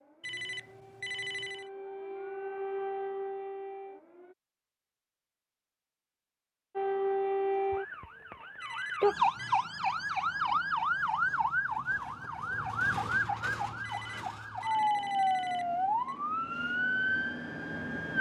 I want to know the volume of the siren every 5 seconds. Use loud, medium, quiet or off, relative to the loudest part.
medium, loud, loud, loud.